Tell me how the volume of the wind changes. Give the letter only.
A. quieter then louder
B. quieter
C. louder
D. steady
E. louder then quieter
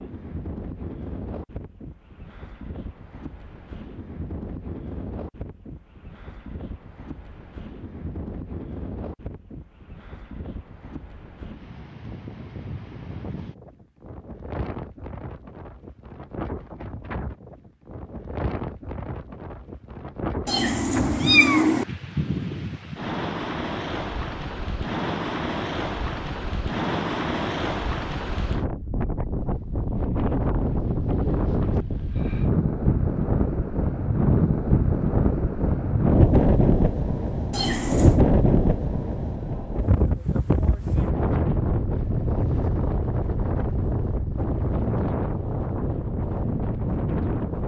C.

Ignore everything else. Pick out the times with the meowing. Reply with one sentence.
You can hear the meowing from 20.4 to 21.9 s and from 37.5 to 38.2 s.